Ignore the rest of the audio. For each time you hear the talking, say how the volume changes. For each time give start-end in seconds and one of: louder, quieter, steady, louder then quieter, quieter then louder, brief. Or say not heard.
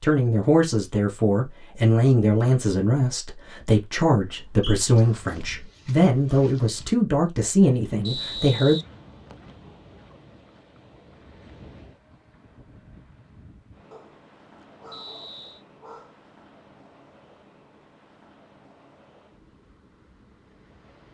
0.0-8.8 steady.